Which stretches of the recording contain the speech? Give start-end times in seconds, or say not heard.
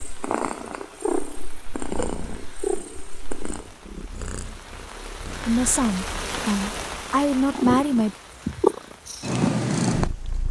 5.5-8.2.